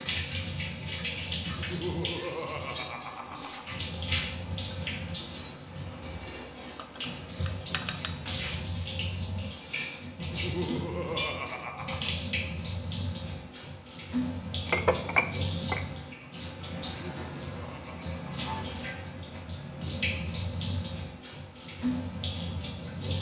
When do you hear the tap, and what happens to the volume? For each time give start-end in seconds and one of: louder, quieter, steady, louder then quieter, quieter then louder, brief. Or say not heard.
0.0-23.1 steady.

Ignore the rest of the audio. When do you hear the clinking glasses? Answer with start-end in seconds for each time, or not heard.
6.8-8.2, 14.7-15.8.